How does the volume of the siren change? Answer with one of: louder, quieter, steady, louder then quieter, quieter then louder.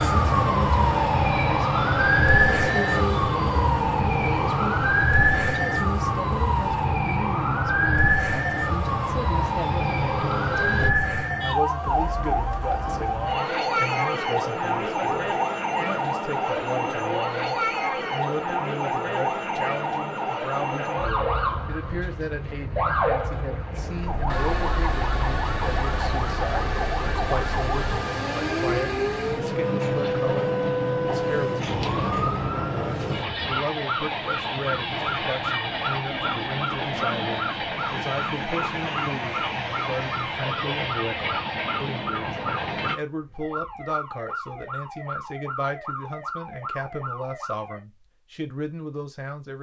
quieter.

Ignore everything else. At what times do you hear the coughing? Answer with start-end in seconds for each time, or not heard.
not heard.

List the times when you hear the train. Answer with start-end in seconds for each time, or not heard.
0.0-10.9, 23.8-43.0.